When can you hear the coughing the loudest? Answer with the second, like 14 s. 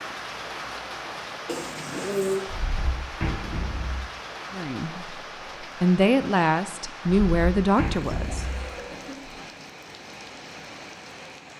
2 s.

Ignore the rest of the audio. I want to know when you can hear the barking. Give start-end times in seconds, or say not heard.
not heard.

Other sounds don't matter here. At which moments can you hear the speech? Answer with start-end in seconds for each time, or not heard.
4.5-8.4.